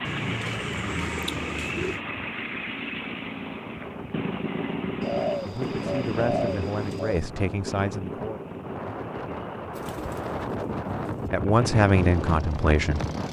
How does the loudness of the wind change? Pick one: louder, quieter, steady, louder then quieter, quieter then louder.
louder.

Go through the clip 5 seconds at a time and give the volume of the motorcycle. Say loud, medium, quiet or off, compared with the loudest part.
loud, loud, medium.